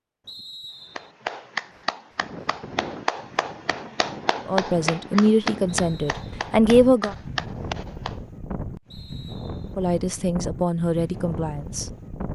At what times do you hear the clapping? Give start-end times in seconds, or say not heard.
0.8-8.2.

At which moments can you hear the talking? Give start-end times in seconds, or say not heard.
4.5-7.2, 9.8-11.8.